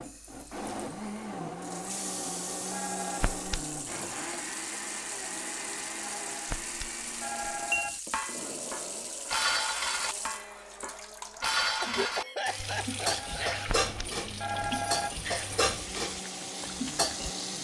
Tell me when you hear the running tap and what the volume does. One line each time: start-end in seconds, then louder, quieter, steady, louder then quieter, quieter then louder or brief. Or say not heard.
0.0-17.5 steady.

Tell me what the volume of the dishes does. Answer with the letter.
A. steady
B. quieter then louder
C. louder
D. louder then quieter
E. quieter
A.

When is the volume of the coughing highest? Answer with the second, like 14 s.
12 s.